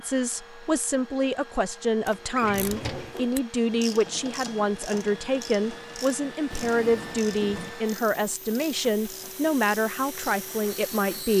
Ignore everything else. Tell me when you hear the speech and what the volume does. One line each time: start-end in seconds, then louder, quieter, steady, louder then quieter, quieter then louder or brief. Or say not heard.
0.0-11.3 steady.